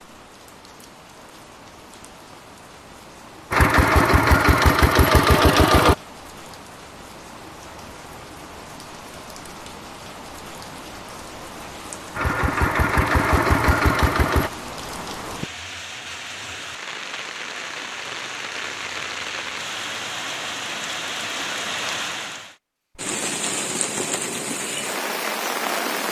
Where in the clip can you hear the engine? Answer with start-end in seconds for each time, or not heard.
3.5-6.0, 12.2-14.5.